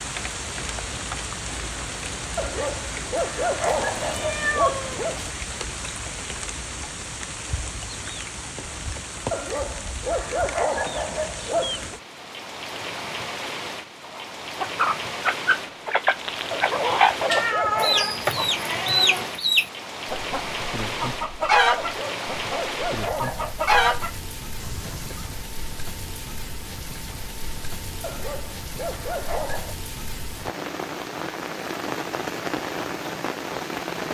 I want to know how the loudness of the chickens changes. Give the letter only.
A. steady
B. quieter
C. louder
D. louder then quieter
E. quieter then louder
A.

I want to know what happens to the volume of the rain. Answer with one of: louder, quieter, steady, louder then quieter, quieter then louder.
steady.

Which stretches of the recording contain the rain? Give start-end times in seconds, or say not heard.
0.0-34.0.